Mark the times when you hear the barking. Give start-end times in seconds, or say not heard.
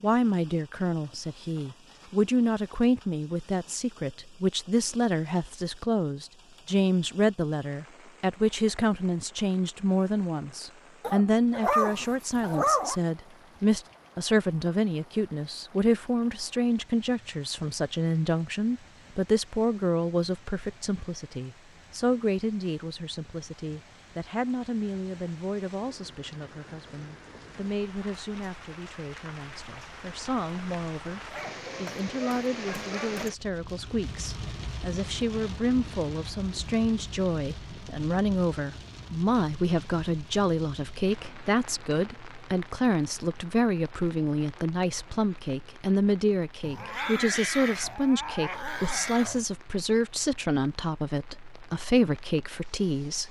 11.0-13.0, 31.3-33.3, 46.6-49.5.